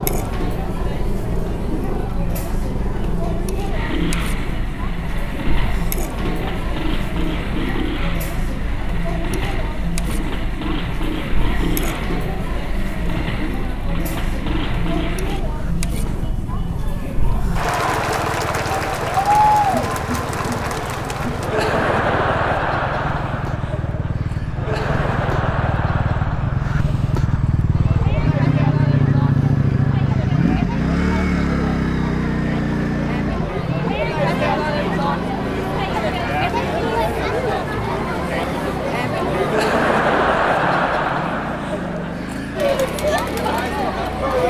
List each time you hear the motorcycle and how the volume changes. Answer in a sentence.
You can hear the motorcycle from 0.0 to 44.4 s, getting louder then quieter.